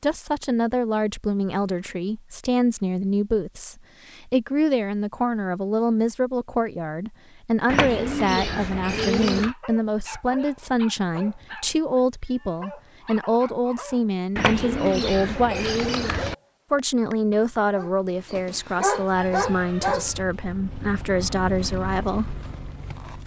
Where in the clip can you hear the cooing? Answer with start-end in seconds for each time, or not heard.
7.7-9.6, 14.3-16.4.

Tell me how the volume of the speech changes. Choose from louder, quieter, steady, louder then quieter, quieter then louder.
steady.